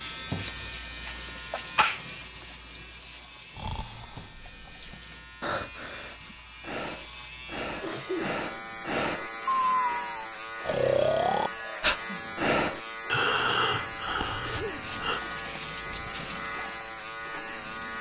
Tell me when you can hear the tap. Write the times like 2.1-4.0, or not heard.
0.0-5.4, 14.7-17.9.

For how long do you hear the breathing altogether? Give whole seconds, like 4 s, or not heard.
12 s.